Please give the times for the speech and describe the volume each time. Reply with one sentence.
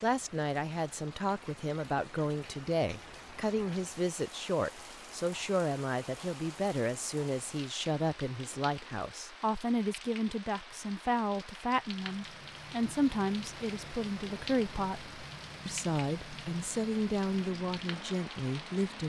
The speech can be heard from 0.0 to 19.0 s, at a steady volume.